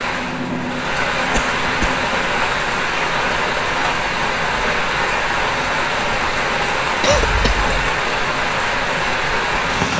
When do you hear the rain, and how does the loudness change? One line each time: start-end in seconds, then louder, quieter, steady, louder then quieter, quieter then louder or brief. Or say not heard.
0.0-9.9 steady.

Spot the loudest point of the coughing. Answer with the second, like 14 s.
7 s.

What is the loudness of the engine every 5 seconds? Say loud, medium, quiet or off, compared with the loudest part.
loud, off.